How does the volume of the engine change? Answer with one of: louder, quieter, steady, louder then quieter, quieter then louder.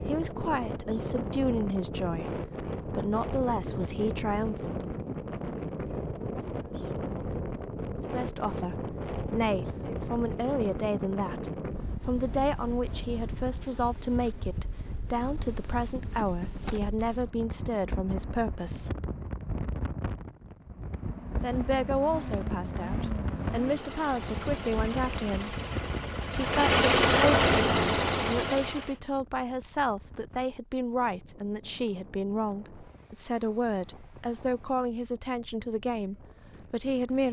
louder.